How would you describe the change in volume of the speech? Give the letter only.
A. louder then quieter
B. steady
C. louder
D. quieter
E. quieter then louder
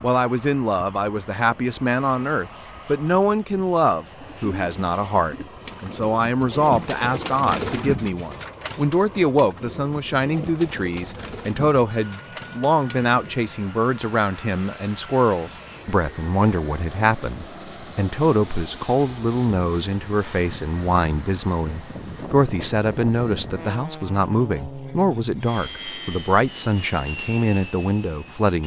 B.